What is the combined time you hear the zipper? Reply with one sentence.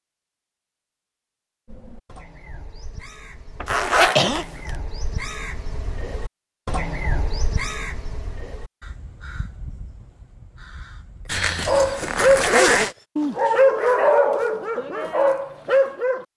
You can hear the zipper for 3 seconds altogether.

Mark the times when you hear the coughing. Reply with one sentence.
The coughing can be heard from 3.6 to 4.5 s.